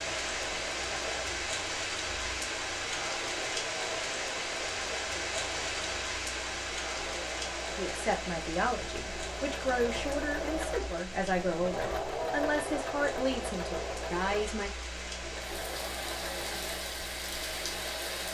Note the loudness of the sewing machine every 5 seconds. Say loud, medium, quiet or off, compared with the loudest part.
medium, medium, loud, medium.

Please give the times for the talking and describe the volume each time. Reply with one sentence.
You can hear the talking from 7.8 to 14.7 s, at a steady volume.